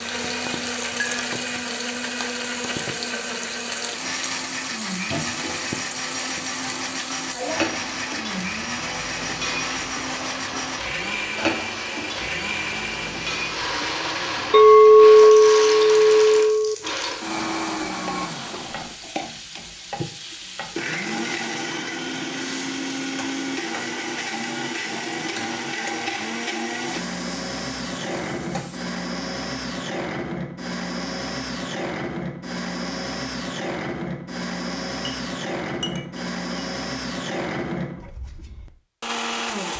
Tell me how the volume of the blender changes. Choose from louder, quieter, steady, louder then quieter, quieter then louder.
steady.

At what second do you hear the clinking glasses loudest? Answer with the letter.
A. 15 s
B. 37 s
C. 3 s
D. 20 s
A.